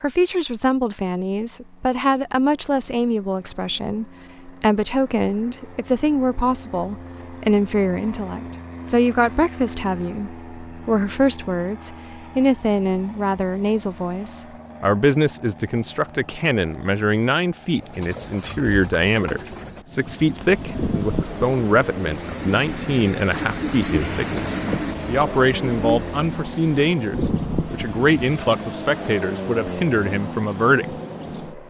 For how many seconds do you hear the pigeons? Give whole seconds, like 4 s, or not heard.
11 s.